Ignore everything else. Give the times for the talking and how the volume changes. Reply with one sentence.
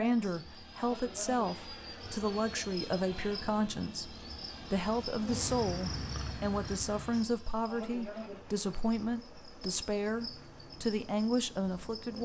You can hear the talking from 0.0 to 12.2 s, at a steady volume.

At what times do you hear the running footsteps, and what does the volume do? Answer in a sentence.
You can't hear the running footsteps here.